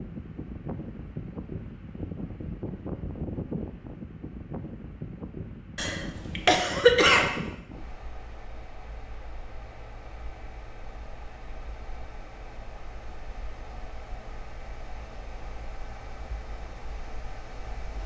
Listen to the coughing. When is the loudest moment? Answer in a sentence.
The loudest moment of the coughing is at 7 seconds.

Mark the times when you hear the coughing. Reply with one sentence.
The coughing can be heard from 5.8 to 7.4 s.